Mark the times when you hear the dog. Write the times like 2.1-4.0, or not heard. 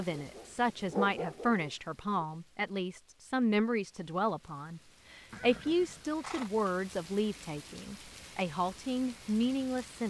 0.0-2.2.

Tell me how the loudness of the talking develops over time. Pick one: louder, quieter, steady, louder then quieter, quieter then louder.
steady.